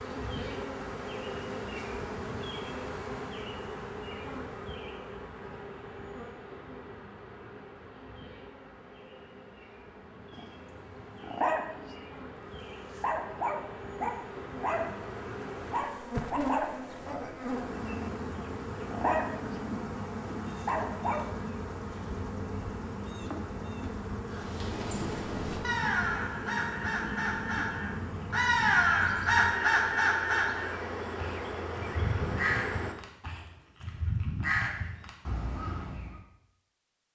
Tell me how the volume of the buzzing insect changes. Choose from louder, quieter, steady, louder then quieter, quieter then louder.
quieter then louder.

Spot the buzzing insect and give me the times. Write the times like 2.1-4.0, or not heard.
0.0-33.0.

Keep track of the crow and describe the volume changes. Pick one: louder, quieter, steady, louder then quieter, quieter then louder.
louder then quieter.